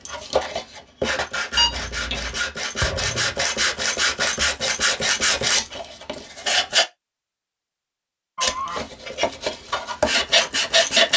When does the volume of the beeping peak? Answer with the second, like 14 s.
2 s.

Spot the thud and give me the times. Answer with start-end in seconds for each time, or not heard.
2.8-3.4.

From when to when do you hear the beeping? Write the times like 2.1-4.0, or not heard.
1.6-2.4, 8.3-8.8.